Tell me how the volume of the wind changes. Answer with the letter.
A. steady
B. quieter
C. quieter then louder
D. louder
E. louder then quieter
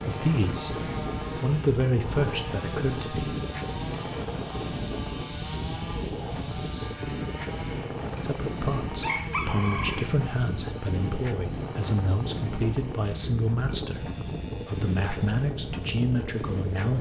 A.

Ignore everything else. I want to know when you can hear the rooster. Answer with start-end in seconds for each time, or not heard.
9.0-10.1.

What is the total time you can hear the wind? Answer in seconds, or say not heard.
17 s.